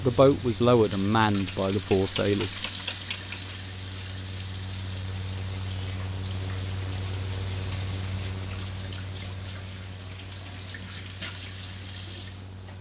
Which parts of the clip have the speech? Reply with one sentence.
You can hear the speech from 0.0 to 2.6 s.